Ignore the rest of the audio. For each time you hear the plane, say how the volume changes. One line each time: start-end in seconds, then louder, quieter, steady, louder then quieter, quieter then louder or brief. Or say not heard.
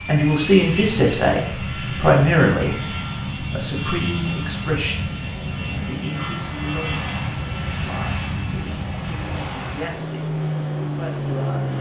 0.0-11.7 steady.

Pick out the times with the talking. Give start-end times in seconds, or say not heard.
0.1-11.7.